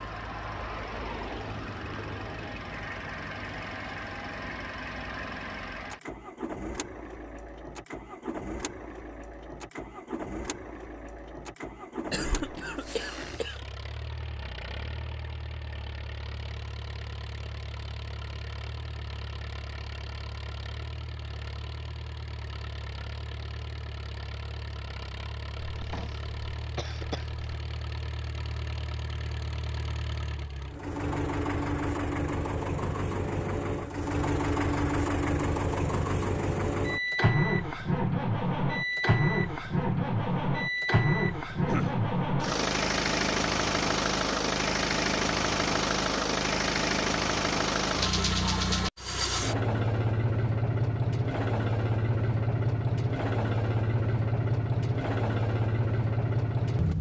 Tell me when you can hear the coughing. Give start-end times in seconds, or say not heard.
12.1-13.6, 25.6-27.4, 41.5-42.0.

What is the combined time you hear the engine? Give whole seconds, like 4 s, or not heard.
57 s.